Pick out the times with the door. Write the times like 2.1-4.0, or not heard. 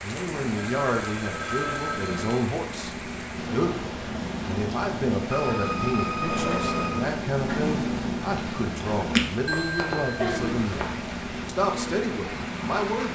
not heard.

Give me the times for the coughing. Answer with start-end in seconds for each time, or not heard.
9.5-11.0.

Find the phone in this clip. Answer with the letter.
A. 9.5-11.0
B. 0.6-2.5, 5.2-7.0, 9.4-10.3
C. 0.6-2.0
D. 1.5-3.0
B.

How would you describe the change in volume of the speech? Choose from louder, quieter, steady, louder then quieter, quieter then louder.
steady.